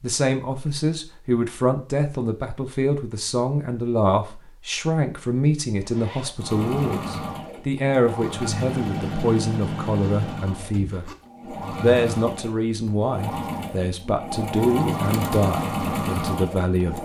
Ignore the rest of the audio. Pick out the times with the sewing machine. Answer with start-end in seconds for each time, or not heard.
6.4-16.9.